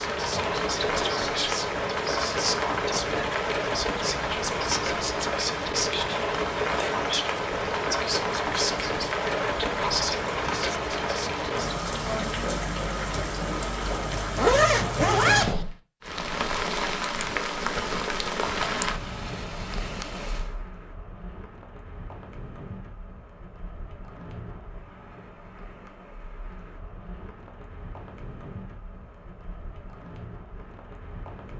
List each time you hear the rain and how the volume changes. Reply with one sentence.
You can hear the rain from 0.0 to 31.5 s, getting quieter.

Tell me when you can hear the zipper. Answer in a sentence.
You can hear the zipper from 14.2 to 15.7 s.